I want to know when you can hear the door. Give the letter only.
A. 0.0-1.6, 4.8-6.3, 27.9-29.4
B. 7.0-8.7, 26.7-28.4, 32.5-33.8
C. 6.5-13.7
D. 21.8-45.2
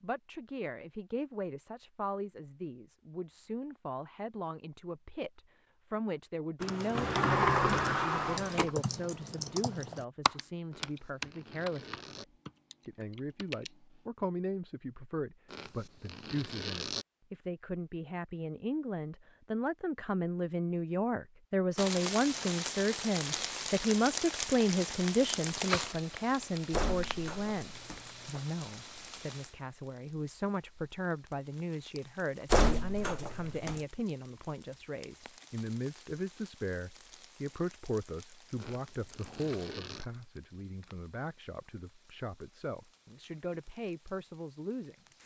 B.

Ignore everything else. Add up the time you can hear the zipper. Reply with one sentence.
The zipper can be heard for 5 seconds in total.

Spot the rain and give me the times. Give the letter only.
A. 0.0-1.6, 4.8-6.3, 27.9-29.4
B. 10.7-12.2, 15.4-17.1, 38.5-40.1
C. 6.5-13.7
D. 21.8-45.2
D.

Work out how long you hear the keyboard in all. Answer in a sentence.
You can hear the keyboard for 7 seconds altogether.